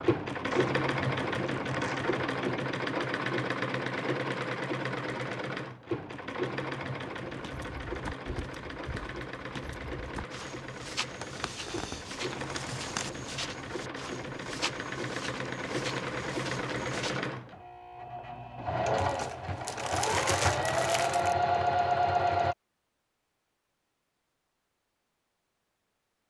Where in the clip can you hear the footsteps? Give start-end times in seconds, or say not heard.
7.2-17.2.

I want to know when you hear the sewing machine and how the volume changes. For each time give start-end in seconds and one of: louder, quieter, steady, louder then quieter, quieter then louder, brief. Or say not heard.
0.0-22.6 quieter then louder.